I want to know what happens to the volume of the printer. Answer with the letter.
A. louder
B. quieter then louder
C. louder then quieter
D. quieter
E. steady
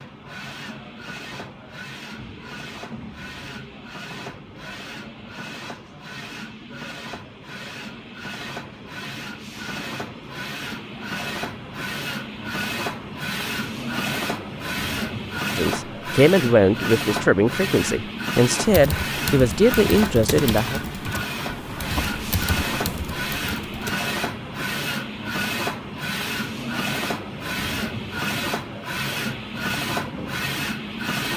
A.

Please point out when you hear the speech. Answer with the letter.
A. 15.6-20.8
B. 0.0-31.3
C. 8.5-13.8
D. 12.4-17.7
A.